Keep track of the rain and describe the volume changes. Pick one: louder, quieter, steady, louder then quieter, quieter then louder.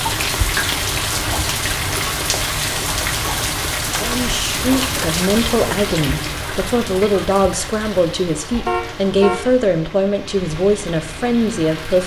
quieter.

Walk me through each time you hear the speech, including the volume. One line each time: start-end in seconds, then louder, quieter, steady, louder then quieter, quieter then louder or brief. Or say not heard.
4.0-12.0 steady.